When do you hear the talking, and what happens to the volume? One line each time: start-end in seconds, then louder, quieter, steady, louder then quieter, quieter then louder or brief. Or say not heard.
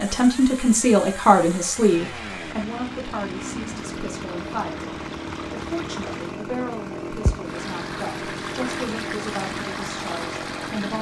0.0-10.9 quieter.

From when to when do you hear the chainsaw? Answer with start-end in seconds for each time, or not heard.
0.0-10.9.